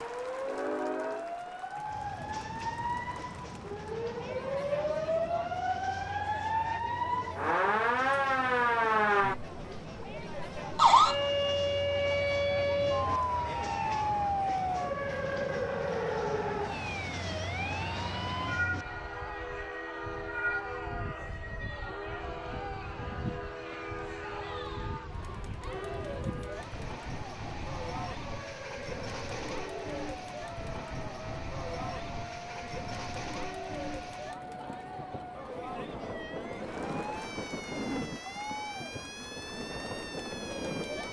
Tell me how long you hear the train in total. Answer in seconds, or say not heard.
41 s.